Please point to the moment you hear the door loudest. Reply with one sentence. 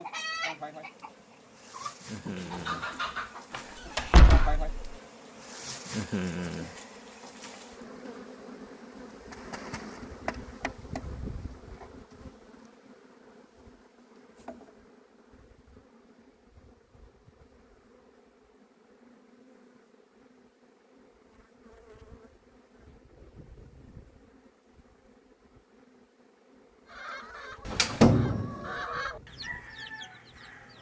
The volume of the door peaks at 28 seconds.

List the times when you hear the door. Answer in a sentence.
The door can be heard from 3.5 to 4.7 s and from 27.6 to 28.5 s.